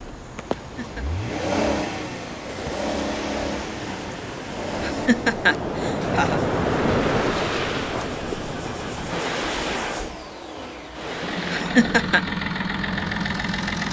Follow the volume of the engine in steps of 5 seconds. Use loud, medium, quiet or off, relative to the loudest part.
loud, medium, loud.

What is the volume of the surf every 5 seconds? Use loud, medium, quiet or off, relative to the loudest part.
medium, loud, medium.